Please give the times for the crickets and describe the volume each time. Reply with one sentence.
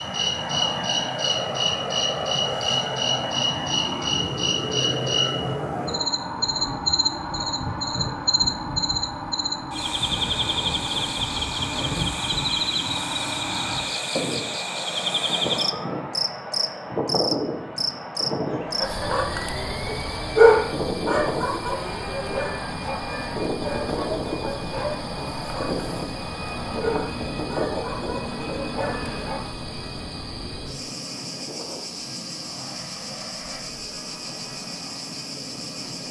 The crickets can be heard from 0.0 to 36.0 s, getting quieter.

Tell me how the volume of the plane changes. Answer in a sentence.
The loudness of the plane goes down.